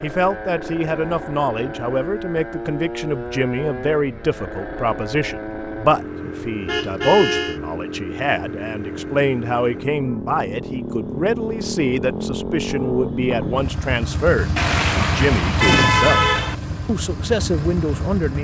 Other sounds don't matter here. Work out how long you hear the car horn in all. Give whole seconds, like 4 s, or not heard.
3 s.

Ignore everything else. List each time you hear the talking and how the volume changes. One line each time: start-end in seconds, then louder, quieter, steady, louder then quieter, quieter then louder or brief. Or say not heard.
0.0-16.2 steady
16.9-18.3 brief.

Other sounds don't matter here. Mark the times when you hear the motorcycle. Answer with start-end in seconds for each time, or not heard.
0.0-18.3.